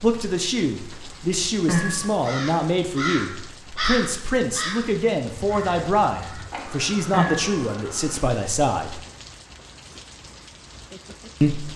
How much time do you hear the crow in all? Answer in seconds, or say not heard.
6 s.